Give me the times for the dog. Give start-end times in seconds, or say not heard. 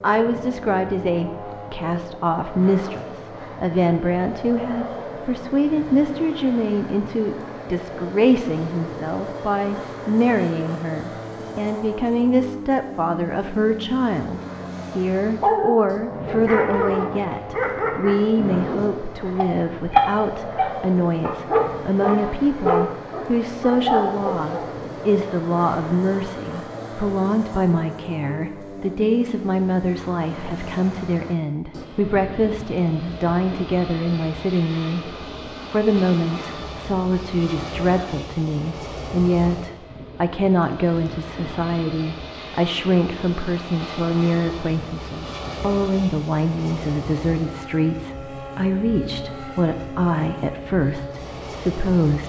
15.4-24.6.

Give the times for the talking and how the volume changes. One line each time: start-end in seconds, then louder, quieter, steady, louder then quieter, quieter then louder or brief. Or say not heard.
0.0-52.2 steady.